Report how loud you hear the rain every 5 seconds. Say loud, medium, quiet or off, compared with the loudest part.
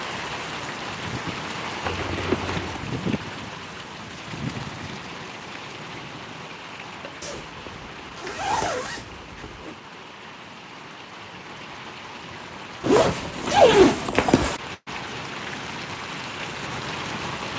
loud, medium, medium, loud.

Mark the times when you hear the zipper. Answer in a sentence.
You can hear the zipper from 1.9 to 2.9 s, from 7.2 to 9.8 s and from 12.8 to 14.6 s.